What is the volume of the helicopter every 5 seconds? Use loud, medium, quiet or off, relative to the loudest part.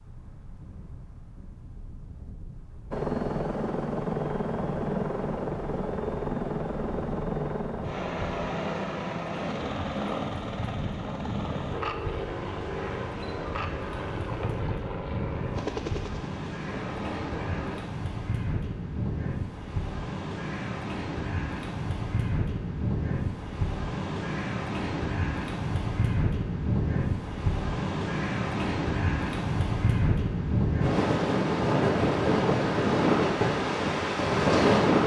loud, loud, medium, medium, off, off, off.